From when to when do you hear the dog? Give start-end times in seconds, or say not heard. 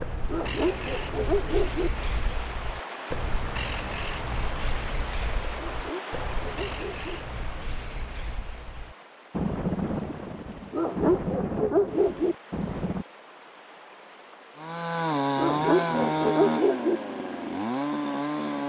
0.2-1.9, 5.5-7.0, 10.7-12.3, 15.3-17.0.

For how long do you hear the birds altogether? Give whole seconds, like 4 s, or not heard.
13 s.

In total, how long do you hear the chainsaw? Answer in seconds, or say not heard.
4 s.